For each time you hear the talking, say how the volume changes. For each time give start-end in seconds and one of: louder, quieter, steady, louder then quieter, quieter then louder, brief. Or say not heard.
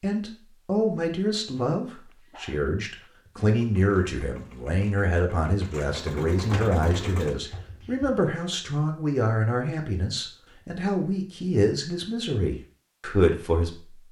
0.0-14.0 steady.